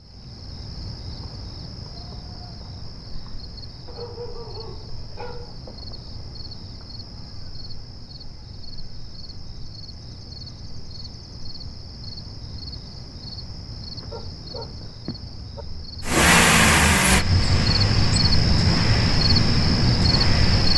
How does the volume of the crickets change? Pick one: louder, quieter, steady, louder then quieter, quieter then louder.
louder.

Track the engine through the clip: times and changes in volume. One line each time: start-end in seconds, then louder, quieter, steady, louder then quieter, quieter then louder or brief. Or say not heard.
16.0-20.7 quieter.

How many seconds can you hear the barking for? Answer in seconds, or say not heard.
3 s.